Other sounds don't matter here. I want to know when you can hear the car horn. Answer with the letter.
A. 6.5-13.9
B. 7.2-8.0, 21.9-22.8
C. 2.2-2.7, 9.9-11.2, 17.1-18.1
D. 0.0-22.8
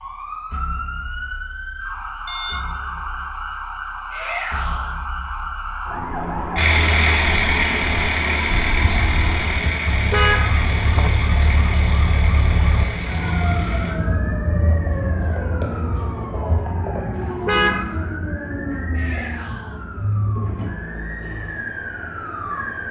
C.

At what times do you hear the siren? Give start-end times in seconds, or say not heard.
0.0-22.8.